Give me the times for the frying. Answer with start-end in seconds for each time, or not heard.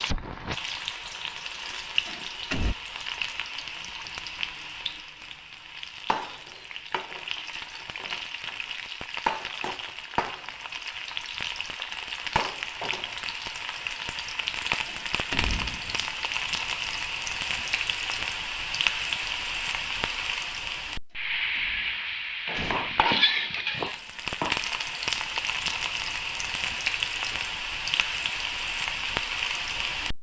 0.0-30.1.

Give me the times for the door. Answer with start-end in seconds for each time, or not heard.
2.0-2.8, 14.8-16.4, 21.6-23.1.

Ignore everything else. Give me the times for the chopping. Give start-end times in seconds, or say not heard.
22.6-24.6.